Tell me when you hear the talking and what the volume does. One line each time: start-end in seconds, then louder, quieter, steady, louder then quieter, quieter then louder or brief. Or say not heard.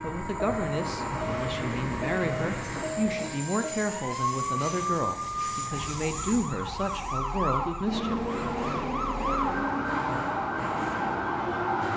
0.0-8.2 steady.